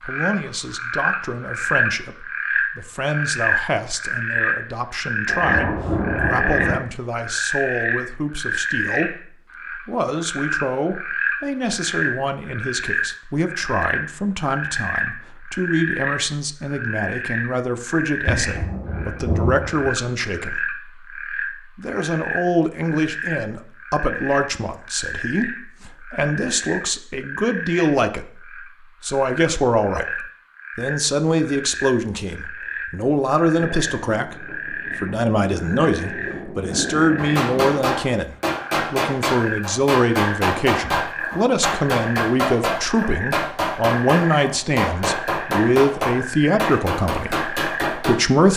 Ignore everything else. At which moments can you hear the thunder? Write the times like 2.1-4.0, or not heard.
5.2-6.8, 18.2-19.9, 33.5-37.8.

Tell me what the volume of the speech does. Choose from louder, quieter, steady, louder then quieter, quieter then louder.
louder.